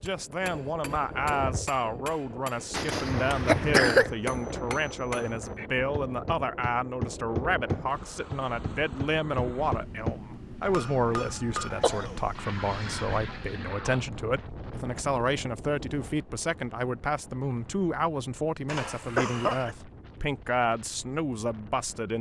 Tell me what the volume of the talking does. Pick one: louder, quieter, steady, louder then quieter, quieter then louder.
steady.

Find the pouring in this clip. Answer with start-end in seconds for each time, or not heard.
12.3-14.1.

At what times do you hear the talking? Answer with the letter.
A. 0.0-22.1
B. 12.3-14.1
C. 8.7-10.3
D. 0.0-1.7
A.